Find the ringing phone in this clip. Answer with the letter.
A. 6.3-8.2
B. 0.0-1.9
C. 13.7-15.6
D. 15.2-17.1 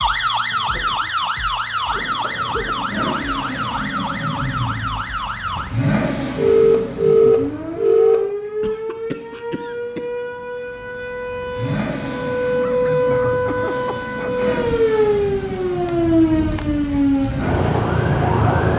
A.